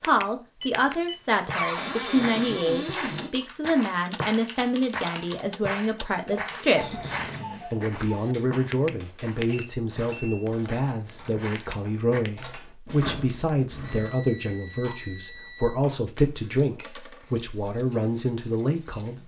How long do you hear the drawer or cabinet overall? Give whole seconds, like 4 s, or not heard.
4 s.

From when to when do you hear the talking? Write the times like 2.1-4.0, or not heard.
0.0-7.0, 7.7-19.2.